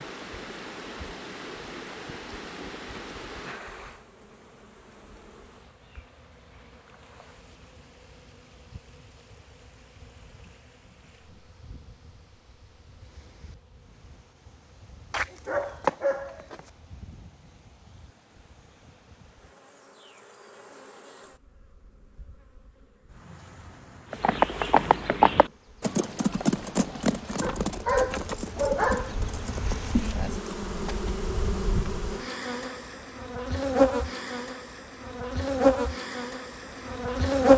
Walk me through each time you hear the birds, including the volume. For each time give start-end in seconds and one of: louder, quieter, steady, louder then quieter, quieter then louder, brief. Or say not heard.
not heard.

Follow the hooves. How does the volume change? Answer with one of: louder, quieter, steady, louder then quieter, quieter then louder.
quieter.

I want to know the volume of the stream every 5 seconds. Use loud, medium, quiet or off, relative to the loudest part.
loud, quiet, quiet, quiet, off, off, off, off.